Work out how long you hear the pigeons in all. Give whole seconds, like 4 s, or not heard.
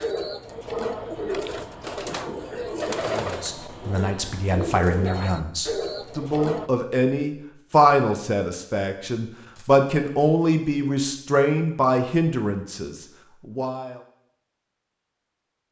7 s.